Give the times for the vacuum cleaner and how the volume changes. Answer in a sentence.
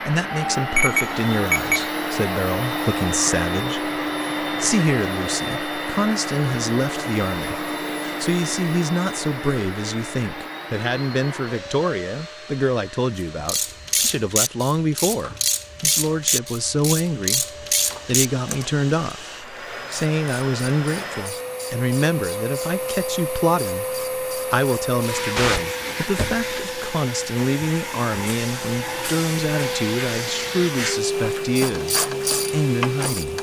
You can hear the vacuum cleaner from 0.0 to 33.3 s, getting quieter then louder.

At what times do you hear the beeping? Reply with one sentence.
You can hear the beeping from 0.8 to 1.9 s.